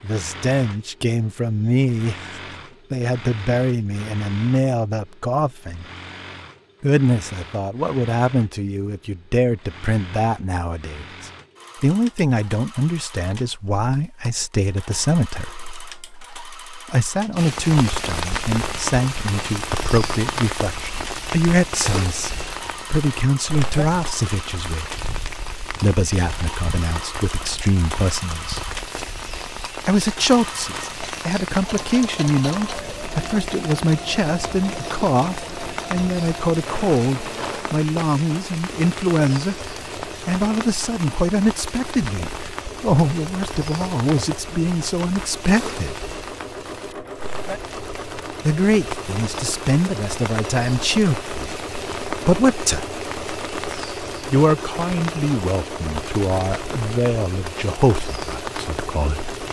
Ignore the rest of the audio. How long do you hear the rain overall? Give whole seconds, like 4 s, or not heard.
42 s.